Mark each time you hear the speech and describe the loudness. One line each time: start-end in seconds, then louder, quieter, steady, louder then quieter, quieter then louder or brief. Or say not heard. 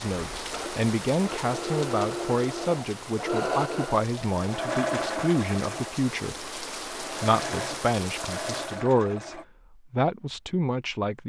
0.0-11.2 steady.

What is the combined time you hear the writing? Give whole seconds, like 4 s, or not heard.
not heard.